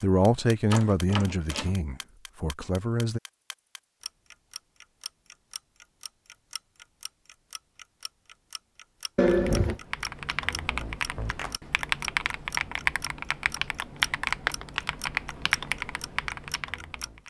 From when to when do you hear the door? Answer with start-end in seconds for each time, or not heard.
0.7-1.8, 9.2-9.8.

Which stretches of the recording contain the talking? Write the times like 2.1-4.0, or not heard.
0.0-3.2.